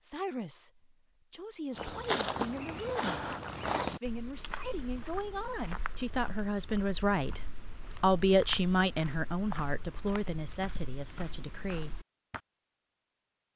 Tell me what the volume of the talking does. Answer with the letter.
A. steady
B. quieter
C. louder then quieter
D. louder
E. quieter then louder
C.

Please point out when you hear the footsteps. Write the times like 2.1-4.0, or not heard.
1.8-12.4.